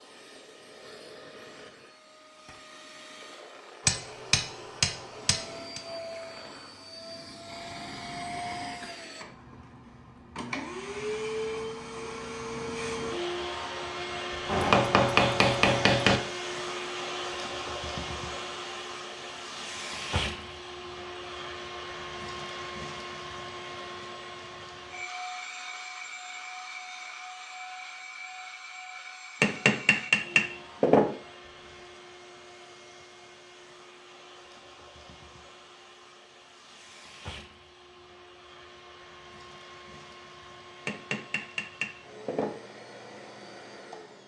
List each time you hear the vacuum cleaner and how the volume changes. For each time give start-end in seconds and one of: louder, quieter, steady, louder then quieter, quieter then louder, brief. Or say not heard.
0.0-44.2 louder then quieter.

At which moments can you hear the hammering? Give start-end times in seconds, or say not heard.
3.9-5.8, 14.4-16.2, 29.4-31.1, 40.9-42.5.